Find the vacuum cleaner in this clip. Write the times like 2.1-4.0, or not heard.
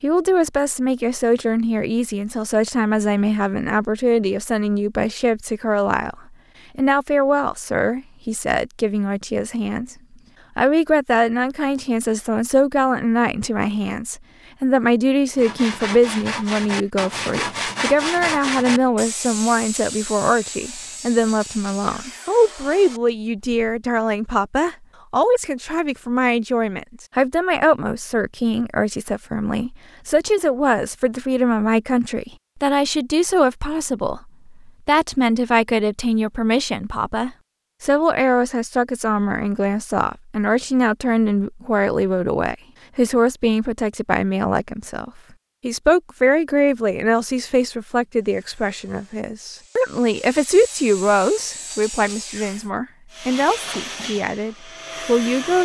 53.1-55.5.